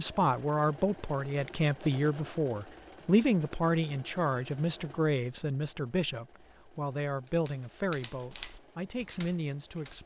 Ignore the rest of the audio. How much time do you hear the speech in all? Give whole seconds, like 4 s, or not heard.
10 s.